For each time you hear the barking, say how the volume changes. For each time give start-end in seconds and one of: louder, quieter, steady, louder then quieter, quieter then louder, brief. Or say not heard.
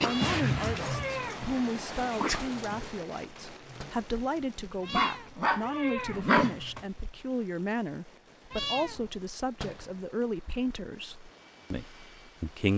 0.0-6.8 quieter then louder.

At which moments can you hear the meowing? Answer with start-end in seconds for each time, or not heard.
0.0-1.4, 4.8-6.2, 8.5-9.1.